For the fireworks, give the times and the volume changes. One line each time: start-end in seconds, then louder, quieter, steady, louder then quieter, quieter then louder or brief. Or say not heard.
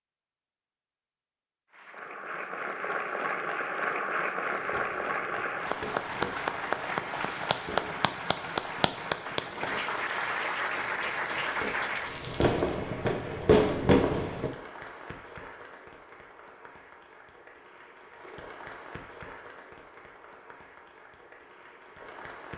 4.5-14.5 louder.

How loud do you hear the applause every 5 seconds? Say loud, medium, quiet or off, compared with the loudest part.
loud, loud, loud, quiet, quiet.